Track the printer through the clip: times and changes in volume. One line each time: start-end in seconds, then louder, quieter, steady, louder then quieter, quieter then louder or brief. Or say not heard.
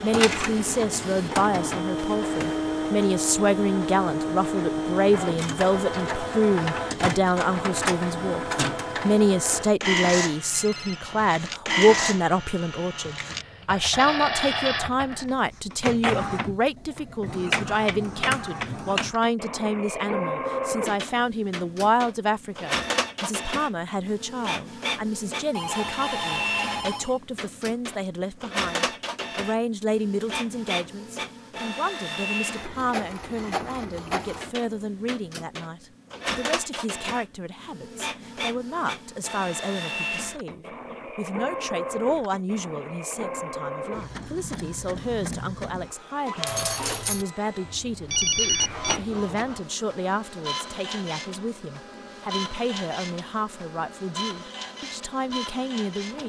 0.0-56.2 quieter.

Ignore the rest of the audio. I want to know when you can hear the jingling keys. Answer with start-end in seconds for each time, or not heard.
46.4-47.2.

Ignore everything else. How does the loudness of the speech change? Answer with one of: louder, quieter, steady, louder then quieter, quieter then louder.
quieter.